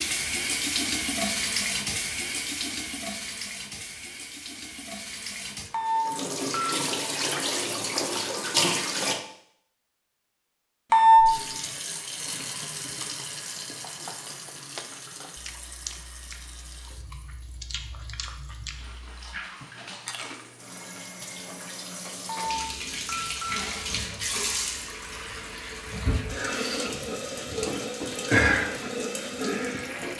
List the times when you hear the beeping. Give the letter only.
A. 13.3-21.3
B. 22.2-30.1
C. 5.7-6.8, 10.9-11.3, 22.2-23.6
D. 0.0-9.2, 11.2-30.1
C.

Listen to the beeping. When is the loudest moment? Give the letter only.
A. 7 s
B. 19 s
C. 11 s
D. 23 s
C.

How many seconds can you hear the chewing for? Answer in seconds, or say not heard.
8 s.